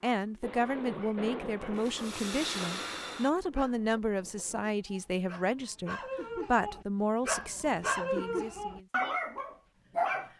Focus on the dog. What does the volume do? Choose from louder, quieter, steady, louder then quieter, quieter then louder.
louder.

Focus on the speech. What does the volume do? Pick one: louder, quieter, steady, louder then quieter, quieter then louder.
steady.